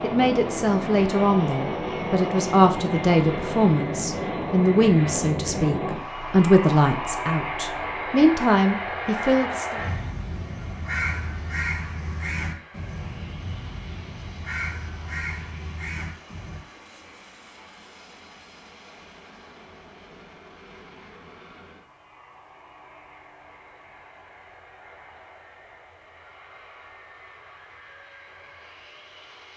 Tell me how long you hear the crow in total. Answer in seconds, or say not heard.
7 s.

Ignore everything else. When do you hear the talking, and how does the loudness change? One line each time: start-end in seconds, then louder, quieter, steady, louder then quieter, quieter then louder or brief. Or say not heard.
0.0-9.8 steady.